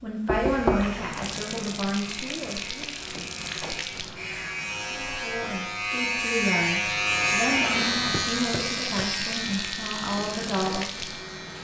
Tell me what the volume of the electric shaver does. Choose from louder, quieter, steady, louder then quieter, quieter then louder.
louder then quieter.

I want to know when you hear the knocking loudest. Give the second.
1 s.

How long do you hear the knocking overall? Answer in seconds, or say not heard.
2 s.